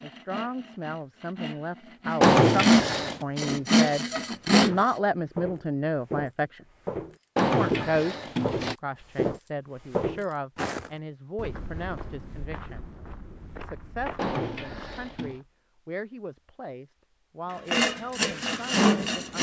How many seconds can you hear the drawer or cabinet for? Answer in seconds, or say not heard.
4 s.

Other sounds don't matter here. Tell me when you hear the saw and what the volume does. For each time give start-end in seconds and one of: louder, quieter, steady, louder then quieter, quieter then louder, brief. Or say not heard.
0.0-4.8 louder
17.7-19.3 brief.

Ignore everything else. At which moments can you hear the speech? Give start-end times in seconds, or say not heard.
0.0-6.6, 7.4-12.8, 13.6-19.3.